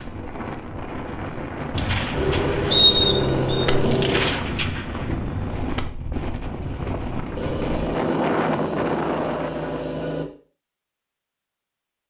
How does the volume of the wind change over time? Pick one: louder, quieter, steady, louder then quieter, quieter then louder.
louder.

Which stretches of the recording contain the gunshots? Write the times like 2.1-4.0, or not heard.
1.7-6.0.